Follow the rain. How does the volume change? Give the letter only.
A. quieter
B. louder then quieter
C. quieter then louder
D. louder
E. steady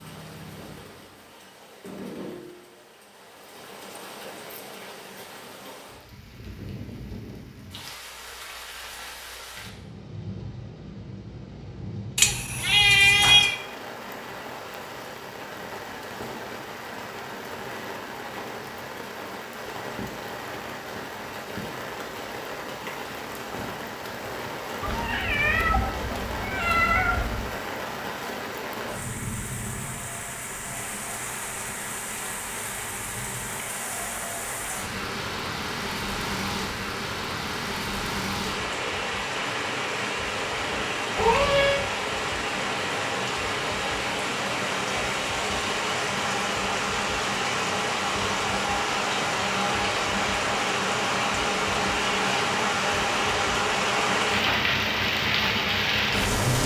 D.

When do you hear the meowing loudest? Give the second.
13 s.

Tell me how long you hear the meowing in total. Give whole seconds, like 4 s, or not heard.
5 s.